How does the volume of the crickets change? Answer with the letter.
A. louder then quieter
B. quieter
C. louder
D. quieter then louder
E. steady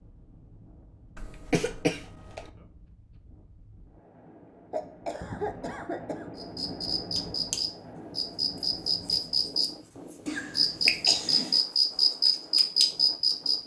C.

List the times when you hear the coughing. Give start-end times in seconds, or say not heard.
1.1-2.5, 4.7-6.2, 10.2-11.6.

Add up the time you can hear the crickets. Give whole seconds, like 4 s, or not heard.
7 s.